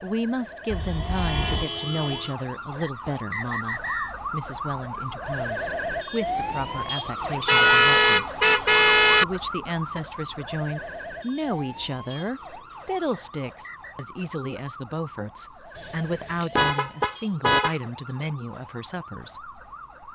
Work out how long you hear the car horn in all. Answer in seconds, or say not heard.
5 s.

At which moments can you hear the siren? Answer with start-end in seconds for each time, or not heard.
0.0-20.1.